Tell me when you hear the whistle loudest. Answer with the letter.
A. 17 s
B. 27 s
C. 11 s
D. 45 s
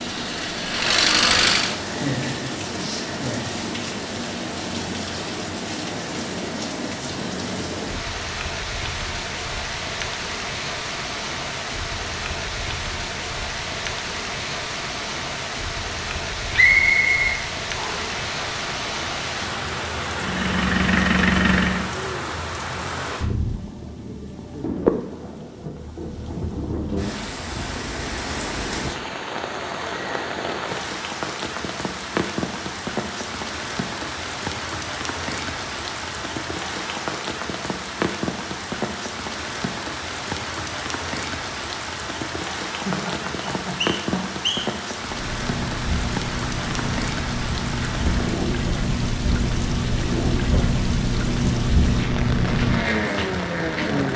A.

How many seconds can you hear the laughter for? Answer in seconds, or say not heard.
3 s.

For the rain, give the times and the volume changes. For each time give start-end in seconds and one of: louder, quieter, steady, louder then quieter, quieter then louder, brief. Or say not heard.
0.0-54.1 steady.